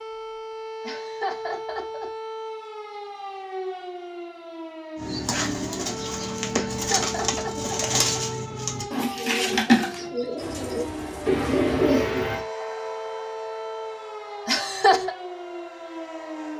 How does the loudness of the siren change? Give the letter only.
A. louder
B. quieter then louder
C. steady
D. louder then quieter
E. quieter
C.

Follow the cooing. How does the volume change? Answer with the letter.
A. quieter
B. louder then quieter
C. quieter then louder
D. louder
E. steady
D.